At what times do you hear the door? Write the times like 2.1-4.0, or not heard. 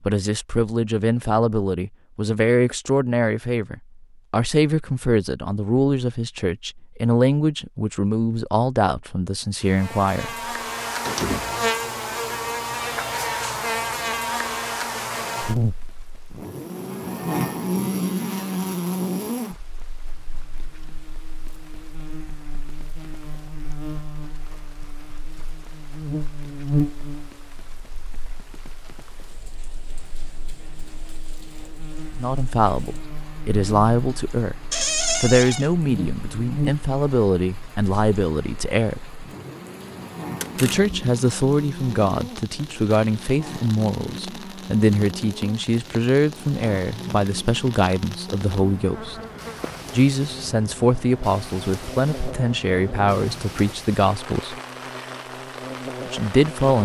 11.1-11.7, 34.7-35.7, 40.4-40.9.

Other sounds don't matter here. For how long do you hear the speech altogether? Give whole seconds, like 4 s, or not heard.
31 s.